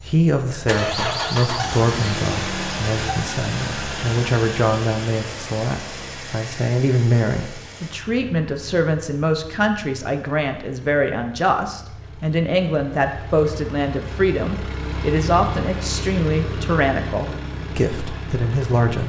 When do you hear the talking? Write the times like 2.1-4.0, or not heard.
0.1-19.0.